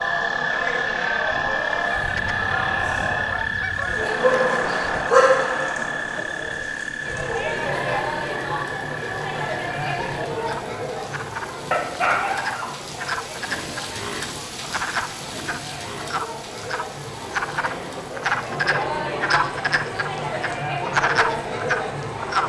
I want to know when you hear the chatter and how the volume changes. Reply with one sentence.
You can hear the chatter from 0.0 to 22.4 s, getting quieter then louder.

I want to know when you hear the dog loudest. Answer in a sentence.
The loudest moment of the dog is at 5 seconds.